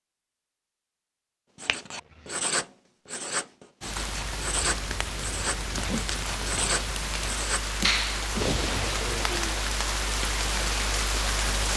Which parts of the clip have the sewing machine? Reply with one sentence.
The sewing machine can't be heard in this clip.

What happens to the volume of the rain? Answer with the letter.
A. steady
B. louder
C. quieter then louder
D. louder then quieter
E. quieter
B.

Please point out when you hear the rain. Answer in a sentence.
You can hear the rain from 3.8 to 11.7 s.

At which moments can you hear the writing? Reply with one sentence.
The writing can be heard from 1.6 to 7.6 s.